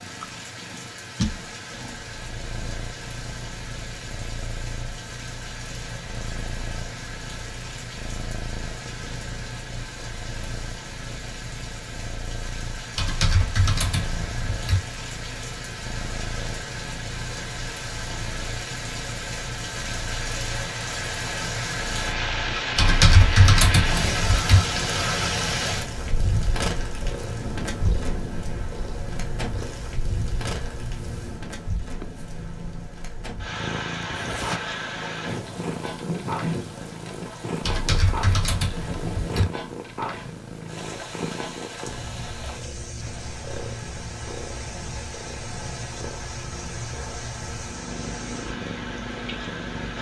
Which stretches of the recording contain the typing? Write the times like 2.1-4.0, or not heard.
12.9-14.8, 22.8-24.6, 37.6-39.5.